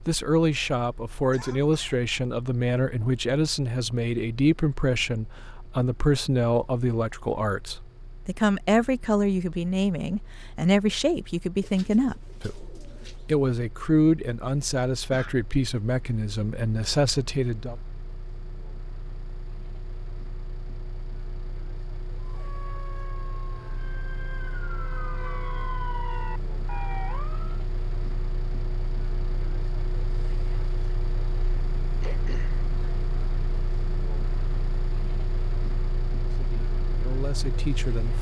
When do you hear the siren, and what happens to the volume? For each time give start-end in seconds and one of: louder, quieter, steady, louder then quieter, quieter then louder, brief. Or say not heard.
22.2-27.6 louder.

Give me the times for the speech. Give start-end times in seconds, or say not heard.
0.1-17.8, 36.2-38.1.